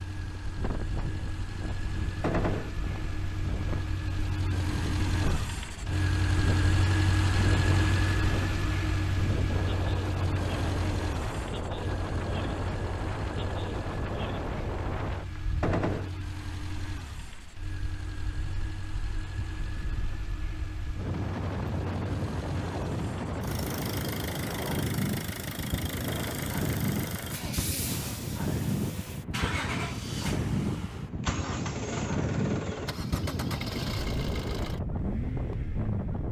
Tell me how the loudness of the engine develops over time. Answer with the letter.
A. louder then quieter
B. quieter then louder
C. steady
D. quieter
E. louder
B.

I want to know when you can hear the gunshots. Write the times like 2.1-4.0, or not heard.
2.2-2.8, 15.6-16.1, 26.1-26.6.